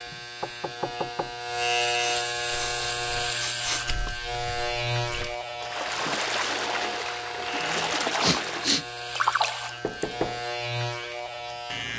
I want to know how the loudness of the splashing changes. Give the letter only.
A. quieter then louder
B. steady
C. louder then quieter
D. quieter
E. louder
E.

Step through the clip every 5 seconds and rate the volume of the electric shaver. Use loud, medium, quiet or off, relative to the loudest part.
loud, medium, loud.